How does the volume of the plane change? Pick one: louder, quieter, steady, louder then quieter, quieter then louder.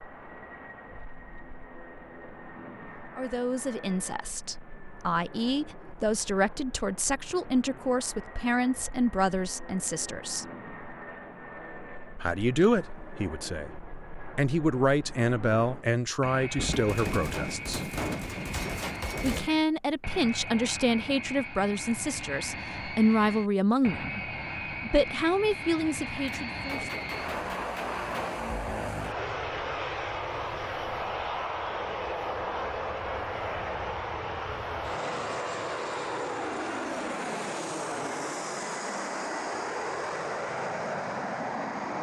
louder.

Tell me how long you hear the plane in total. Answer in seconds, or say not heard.
42 s.